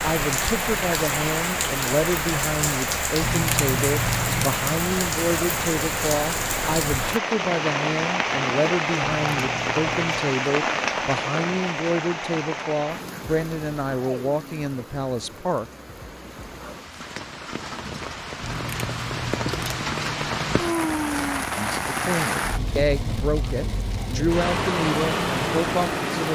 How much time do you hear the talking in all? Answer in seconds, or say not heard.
20 s.